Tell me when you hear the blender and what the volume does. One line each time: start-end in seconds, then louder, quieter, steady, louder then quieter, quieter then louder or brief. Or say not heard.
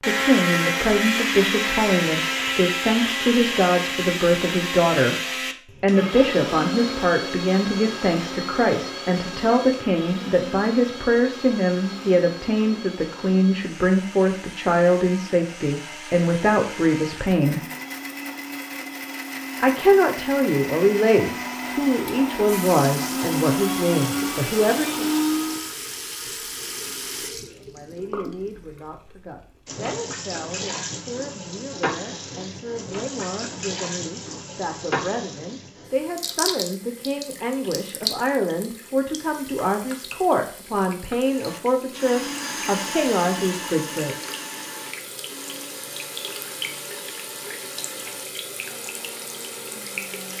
0.0-25.8 quieter then louder
41.2-50.3 quieter.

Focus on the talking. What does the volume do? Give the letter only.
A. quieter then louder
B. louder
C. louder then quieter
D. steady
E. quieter
A.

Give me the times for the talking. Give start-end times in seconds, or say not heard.
0.1-5.2, 5.8-17.6, 19.6-25.1, 27.5-44.4.